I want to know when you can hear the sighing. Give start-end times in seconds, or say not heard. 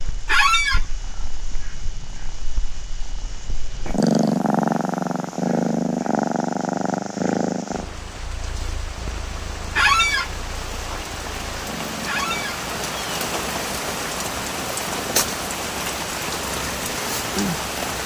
not heard.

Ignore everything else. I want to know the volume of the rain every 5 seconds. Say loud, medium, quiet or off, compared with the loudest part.
quiet, quiet, loud, loud.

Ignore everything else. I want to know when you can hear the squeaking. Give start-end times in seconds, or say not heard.
0.2-0.8, 9.8-10.3, 12.1-12.6.